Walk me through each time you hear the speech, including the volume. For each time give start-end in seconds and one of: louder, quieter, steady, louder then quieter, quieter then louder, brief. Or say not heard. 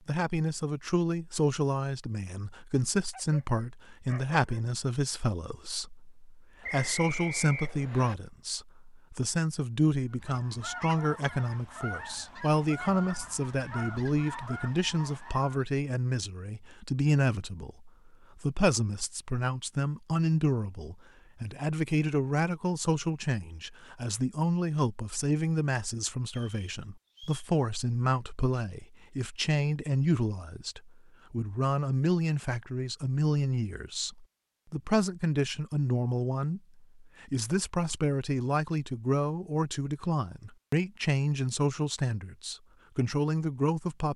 0.1-44.1 steady.